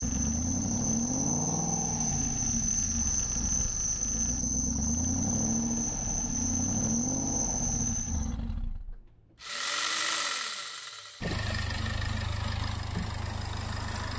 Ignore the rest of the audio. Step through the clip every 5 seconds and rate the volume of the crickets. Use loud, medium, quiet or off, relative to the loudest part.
loud, loud, off.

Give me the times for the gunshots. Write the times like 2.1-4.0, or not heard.
11.2-11.7.